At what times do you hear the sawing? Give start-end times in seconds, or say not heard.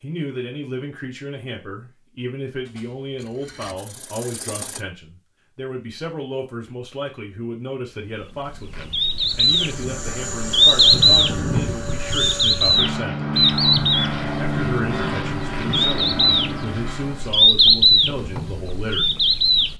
2.6-4.8.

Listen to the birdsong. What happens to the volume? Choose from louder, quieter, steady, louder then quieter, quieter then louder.
quieter then louder.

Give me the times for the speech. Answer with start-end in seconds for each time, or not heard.
0.0-13.3, 14.3-19.1.